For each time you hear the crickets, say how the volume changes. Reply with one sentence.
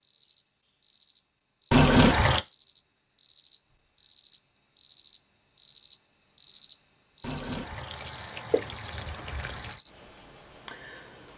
The crickets can be heard from 0.0 to 11.3 s, getting louder.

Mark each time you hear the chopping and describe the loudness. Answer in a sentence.
You can't hear the chopping here.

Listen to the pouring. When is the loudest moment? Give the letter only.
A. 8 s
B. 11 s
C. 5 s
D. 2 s
D.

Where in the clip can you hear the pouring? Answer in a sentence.
The pouring can be heard from 1.7 to 2.5 s and from 7.2 to 9.8 s.